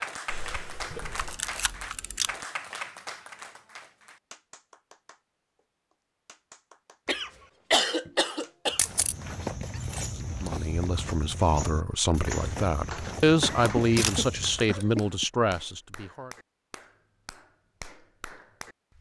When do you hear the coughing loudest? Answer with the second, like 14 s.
8 s.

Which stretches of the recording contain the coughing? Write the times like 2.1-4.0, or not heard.
0.2-1.4, 7.0-8.8, 12.9-15.2.